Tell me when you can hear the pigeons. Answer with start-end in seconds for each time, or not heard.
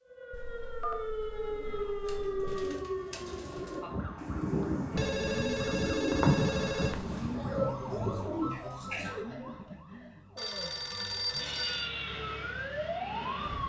1.4-9.2.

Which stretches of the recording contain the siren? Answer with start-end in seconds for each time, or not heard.
0.1-13.6.